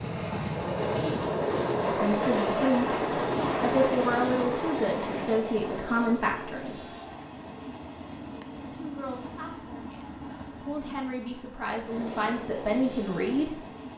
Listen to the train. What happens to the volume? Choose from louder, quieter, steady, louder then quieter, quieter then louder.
quieter.